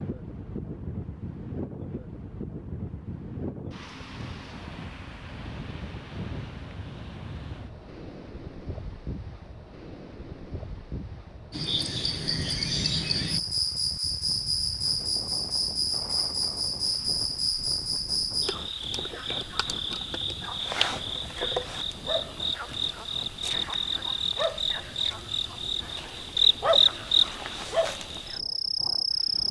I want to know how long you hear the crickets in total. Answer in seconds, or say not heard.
18 s.